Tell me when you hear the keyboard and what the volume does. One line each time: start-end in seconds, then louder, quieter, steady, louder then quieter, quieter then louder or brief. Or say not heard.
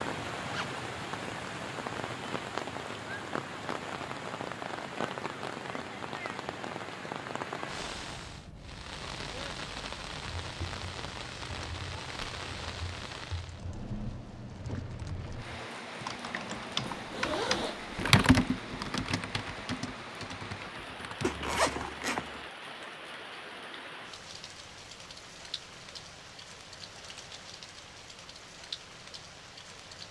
10.2-21.8 louder then quieter.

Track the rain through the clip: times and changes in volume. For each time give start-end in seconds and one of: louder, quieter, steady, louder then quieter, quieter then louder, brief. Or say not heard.
0.0-30.0 quieter.